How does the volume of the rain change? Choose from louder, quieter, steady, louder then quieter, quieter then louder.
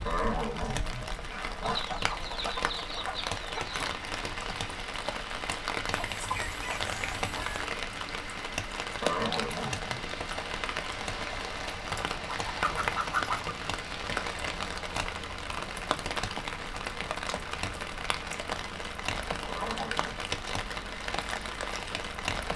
steady.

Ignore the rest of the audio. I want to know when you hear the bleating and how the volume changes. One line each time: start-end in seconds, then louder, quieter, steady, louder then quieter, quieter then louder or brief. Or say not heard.
not heard.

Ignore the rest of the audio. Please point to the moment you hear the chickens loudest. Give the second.
13 s.